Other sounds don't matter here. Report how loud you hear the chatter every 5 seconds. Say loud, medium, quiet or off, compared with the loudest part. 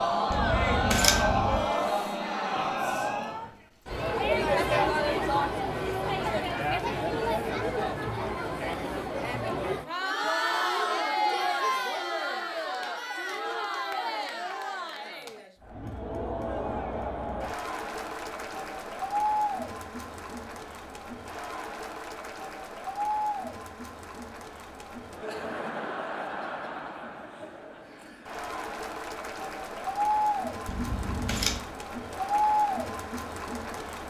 loud, loud, loud, medium, medium, medium, loud.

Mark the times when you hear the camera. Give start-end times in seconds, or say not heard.
0.3-1.7, 30.6-31.7.